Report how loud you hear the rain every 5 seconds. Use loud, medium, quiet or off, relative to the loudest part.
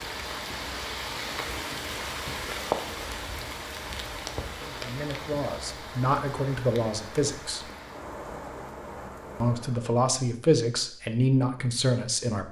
loud, medium, off.